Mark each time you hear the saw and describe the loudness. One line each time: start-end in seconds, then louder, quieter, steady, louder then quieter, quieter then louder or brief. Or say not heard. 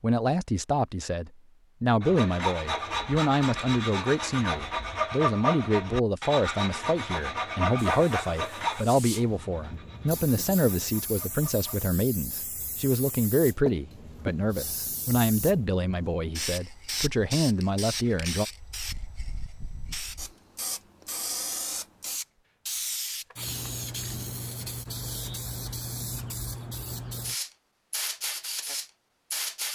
2.0-11.8 quieter.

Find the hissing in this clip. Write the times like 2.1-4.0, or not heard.
7.8-29.6.